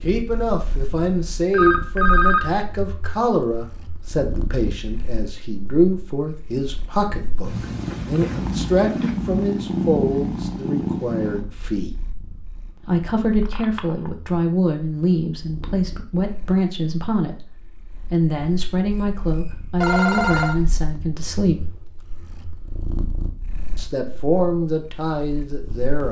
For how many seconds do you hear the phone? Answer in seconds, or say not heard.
3 s.